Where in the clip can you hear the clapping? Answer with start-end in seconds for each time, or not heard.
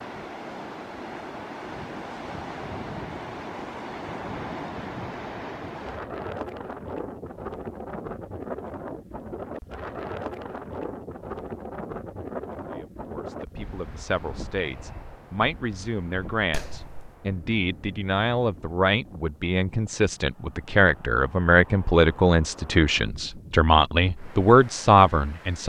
16.5-17.1.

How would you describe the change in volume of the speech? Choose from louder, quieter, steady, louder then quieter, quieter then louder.
louder.